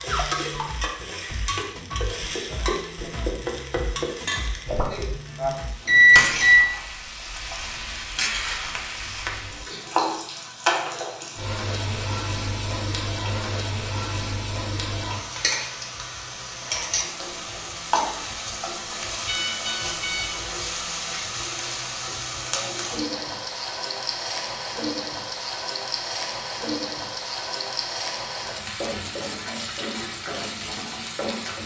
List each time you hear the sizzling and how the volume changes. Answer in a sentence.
You can hear the sizzling from 0.0 to 31.6 s, at a steady volume.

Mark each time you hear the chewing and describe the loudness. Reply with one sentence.
You can't hear the chewing here.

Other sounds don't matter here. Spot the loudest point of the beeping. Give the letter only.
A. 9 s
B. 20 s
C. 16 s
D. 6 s
D.